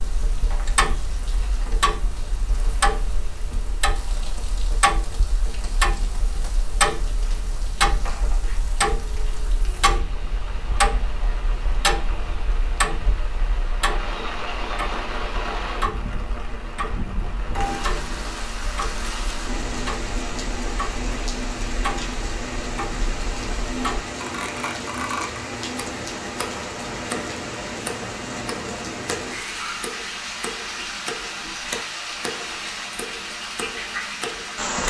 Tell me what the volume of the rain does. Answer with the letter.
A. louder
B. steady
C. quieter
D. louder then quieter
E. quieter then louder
A.